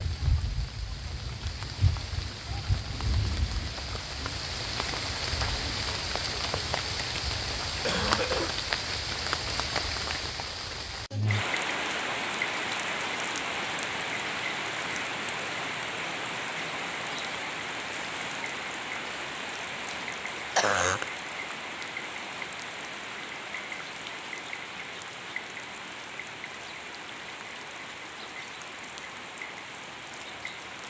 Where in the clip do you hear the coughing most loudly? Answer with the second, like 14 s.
21 s.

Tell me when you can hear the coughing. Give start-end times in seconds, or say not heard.
7.8-8.6, 20.6-21.1.